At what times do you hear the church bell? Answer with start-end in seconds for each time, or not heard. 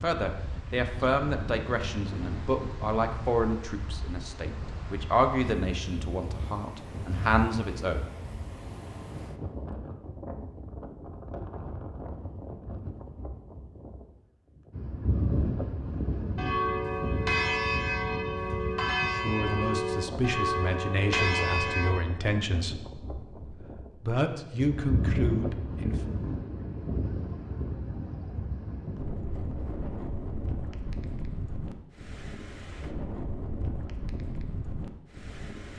16.4-21.9.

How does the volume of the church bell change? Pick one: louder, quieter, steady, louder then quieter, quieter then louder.
steady.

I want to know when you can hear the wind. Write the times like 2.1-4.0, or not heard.
0.0-35.7.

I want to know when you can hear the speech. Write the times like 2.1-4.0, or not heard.
0.0-8.1, 19.1-26.0.